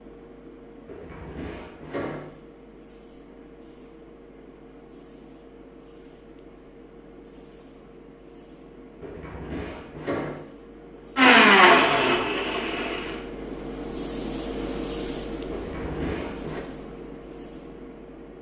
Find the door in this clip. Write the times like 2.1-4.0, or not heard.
0.8-2.2, 9.0-10.4, 15.5-16.6.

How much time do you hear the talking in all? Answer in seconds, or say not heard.
not heard.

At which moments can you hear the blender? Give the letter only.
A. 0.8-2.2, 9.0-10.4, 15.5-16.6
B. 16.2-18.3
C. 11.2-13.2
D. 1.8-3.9
C.